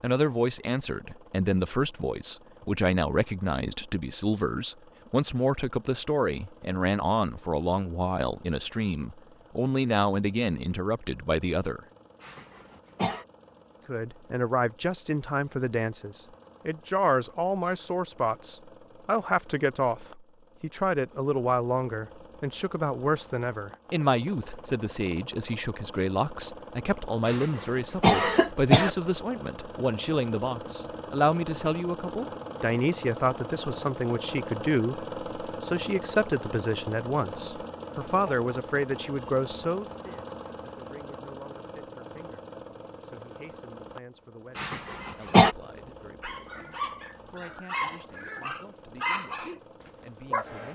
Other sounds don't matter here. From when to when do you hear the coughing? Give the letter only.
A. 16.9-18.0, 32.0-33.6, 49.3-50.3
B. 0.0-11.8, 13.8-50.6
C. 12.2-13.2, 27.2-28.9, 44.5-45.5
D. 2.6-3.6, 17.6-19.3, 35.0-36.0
C.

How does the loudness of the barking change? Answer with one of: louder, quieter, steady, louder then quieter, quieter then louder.
louder then quieter.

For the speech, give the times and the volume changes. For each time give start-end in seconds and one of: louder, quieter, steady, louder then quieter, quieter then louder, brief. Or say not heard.
0.0-11.8 steady
13.8-50.6 quieter.